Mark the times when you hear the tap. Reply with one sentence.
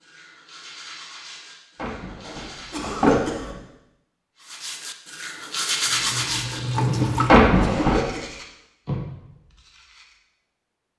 The tap can be heard from 5.3 to 7.5 s.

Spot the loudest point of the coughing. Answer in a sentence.
The volume of the coughing peaks at 3 seconds.